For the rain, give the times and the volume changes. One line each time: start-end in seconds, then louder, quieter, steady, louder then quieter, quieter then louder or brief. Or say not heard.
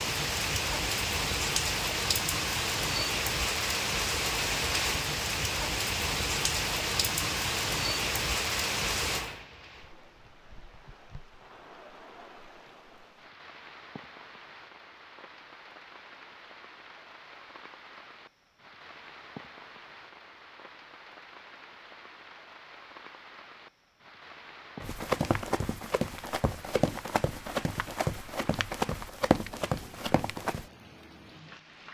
0.0-31.8 quieter.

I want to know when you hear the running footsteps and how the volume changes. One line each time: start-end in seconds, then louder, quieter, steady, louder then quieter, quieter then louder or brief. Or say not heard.
24.8-30.6 steady.